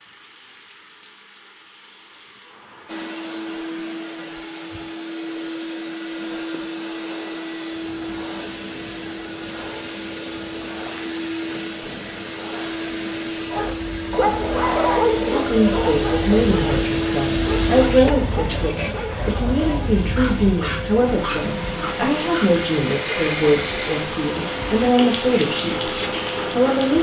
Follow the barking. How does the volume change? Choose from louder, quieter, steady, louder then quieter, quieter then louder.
quieter.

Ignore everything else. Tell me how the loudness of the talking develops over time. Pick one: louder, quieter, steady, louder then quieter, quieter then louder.
steady.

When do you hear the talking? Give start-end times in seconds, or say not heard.
15.2-26.9.